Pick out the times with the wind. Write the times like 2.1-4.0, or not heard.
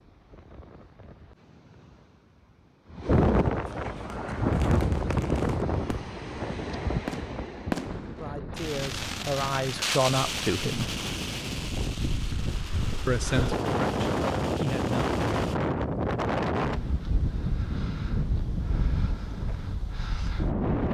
0.0-20.9.